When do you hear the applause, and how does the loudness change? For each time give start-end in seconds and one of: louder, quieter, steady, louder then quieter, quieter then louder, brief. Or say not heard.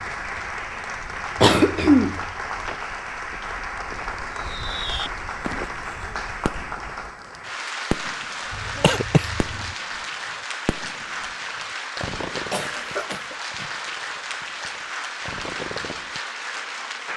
0.0-17.1 steady.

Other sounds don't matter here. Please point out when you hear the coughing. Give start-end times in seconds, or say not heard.
1.4-2.2, 8.5-9.8, 12.3-13.7.